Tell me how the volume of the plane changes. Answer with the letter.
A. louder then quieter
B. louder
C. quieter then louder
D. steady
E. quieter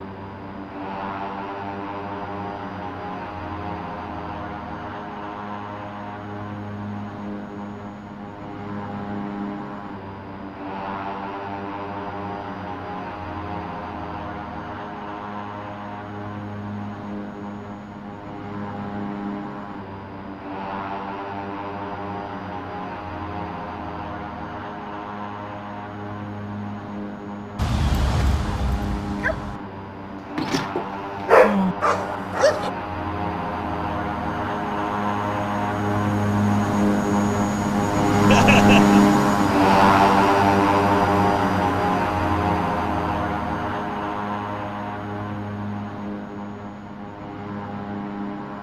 B.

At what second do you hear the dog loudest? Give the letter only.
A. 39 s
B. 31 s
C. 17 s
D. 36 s
B.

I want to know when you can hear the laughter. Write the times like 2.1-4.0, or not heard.
38.2-39.0.